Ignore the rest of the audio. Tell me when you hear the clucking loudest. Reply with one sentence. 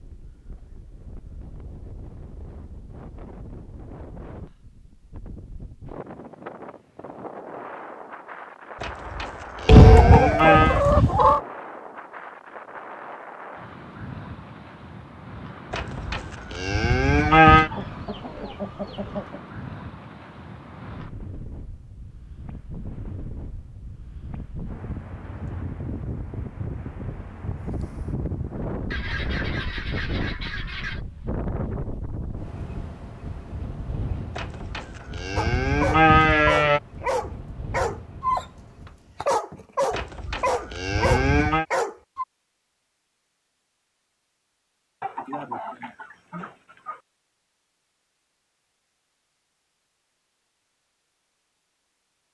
The loudest moment of the clucking is at 10 seconds.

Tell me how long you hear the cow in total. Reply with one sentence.
The cow can be heard for 8 seconds in total.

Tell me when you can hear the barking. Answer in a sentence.
The barking can be heard from 35.4 to 42.2 s.